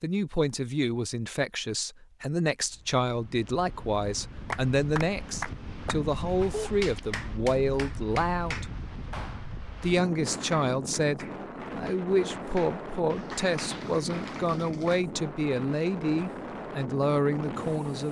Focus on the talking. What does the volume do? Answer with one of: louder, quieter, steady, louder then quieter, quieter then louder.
steady.